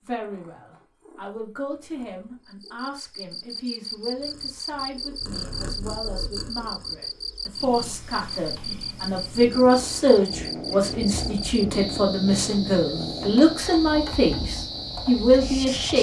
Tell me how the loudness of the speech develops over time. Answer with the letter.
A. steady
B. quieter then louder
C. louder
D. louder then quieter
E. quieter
C.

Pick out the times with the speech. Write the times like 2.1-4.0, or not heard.
0.1-15.9.